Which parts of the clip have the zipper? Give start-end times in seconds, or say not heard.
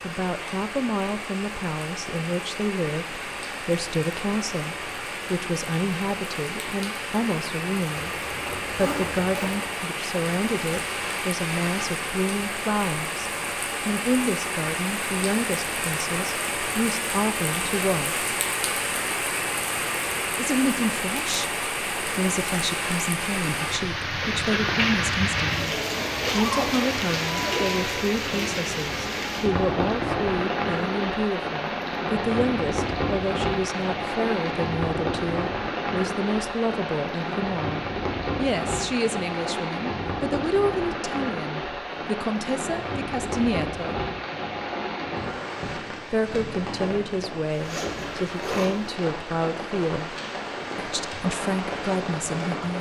8.0-9.7, 26.2-27.6, 47.5-49.0.